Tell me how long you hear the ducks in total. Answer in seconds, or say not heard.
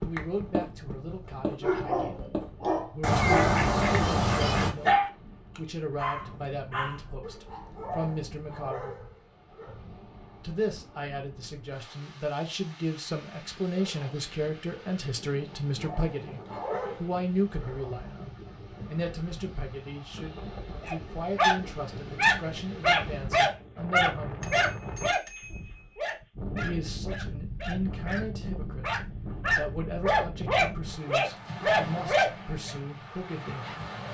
2 s.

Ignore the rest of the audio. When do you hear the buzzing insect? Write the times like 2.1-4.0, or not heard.
not heard.